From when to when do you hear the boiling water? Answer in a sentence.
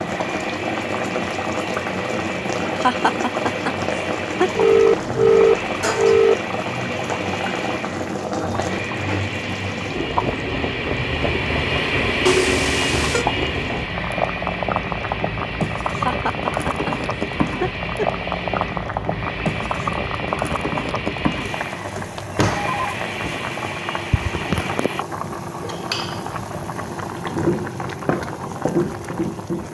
You can hear the boiling water from 0.0 to 29.6 s.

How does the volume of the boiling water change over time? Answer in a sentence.
The volume of the boiling water stays about the same.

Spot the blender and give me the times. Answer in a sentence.
The blender can be heard from 0.0 to 25.1 s.